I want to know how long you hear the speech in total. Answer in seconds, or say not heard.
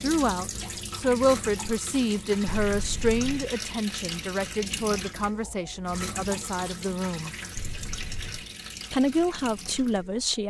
9 s.